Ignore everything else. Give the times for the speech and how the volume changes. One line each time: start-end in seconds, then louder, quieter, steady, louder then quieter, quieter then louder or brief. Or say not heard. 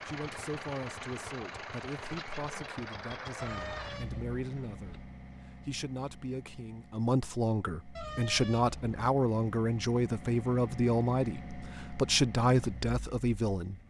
0.1-13.8 louder.